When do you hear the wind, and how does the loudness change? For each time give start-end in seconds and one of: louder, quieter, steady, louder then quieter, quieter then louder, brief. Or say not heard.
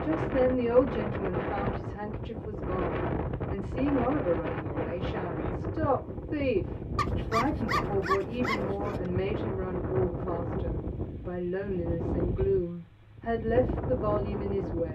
0.0-14.8 steady.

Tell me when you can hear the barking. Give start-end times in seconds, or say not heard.
7.0-8.9.